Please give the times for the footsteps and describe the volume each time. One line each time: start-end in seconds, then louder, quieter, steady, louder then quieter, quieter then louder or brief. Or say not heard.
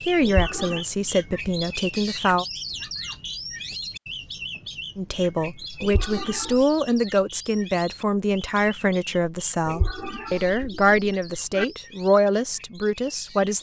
not heard.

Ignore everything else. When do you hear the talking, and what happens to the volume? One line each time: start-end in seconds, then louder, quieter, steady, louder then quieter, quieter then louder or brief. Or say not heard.
0.0-2.5 brief
5.0-13.5 steady.